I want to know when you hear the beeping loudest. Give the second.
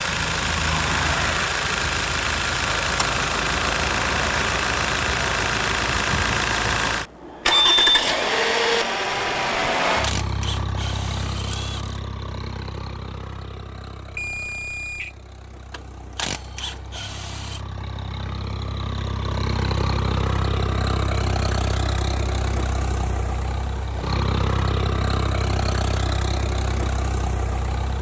8 s.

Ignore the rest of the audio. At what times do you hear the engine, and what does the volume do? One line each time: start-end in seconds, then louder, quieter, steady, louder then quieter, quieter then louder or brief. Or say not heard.
0.0-27.9 quieter then louder.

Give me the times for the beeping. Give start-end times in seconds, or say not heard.
7.5-8.1, 14.2-15.1.